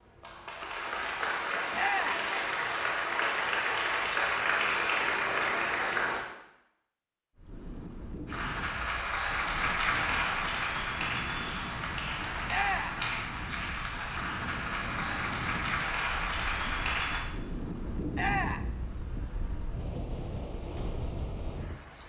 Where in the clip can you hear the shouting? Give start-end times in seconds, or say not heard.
1.7-2.2, 12.4-13.0, 18.1-18.7.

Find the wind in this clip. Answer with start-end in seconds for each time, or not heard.
7.3-22.0.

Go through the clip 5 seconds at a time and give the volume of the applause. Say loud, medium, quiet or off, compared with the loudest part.
loud, loud, loud, loud, off.